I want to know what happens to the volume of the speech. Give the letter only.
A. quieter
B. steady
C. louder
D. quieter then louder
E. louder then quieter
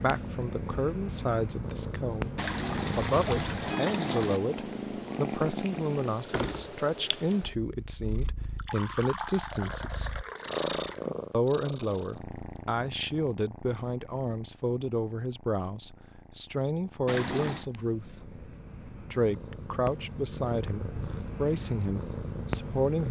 B.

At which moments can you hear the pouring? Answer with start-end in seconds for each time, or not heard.
2.4-4.4, 8.4-11.1, 17.1-17.7.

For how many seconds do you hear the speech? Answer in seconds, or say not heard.
22 s.